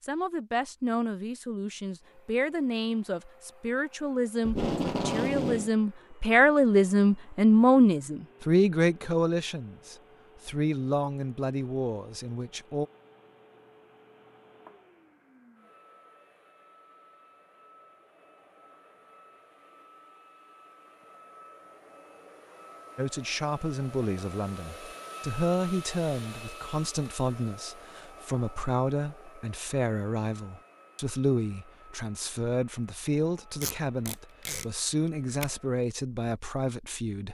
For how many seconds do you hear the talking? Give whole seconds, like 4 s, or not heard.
27 s.